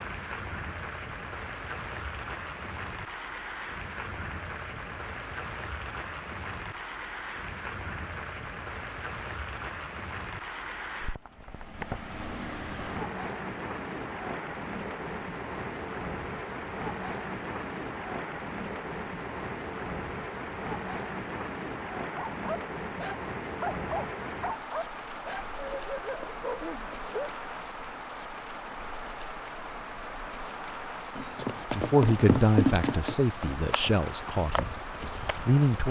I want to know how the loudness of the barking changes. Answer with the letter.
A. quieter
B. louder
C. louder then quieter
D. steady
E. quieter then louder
D.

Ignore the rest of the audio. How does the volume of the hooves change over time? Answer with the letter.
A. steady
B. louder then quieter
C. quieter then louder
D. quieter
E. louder
B.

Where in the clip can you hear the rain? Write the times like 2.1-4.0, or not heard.
0.0-35.8.